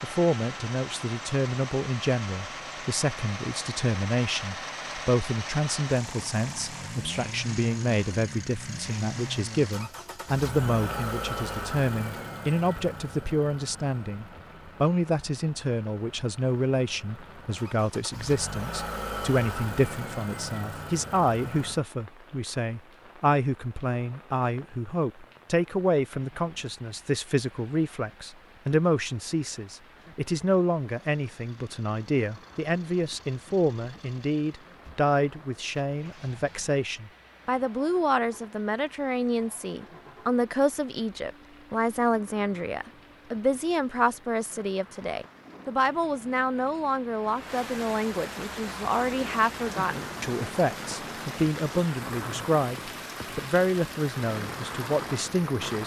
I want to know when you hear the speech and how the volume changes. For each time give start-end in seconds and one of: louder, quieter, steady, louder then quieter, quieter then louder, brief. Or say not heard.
0.0-55.8 steady.